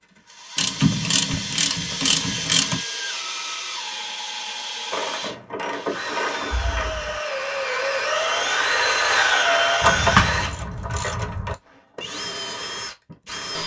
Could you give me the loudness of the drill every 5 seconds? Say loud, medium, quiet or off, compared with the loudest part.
medium, loud, medium.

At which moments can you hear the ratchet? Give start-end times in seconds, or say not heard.
0.6-2.8, 4.9-7.0, 9.8-11.6.